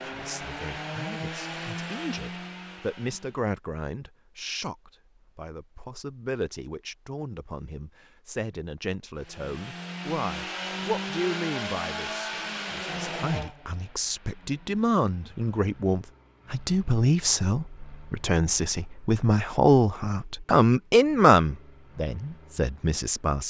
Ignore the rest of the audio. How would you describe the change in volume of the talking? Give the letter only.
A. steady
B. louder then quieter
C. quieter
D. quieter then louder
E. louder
E.